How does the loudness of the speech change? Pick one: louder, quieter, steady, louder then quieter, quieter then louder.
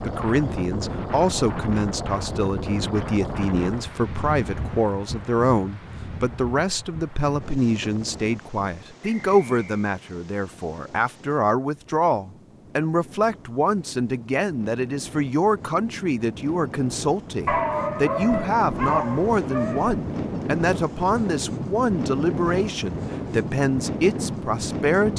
steady.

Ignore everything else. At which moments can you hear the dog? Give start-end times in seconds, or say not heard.
17.4-20.1.